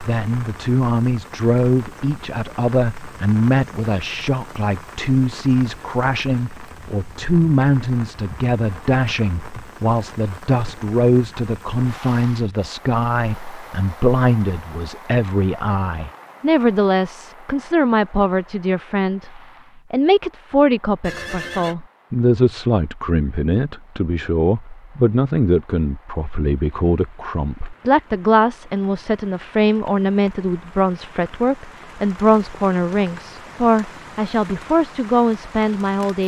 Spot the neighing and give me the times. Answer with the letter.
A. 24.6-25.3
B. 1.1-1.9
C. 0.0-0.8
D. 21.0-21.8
D.